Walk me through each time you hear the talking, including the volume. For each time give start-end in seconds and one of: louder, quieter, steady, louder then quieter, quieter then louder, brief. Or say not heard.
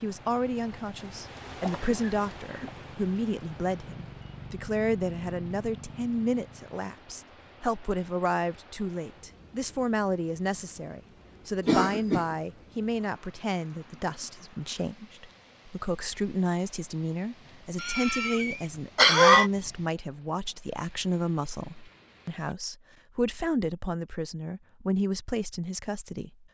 0.0-26.4 steady.